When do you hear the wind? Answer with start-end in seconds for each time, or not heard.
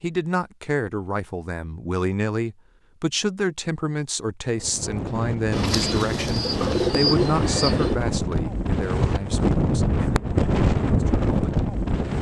4.5-12.1.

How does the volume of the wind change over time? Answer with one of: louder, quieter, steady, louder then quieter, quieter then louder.
louder.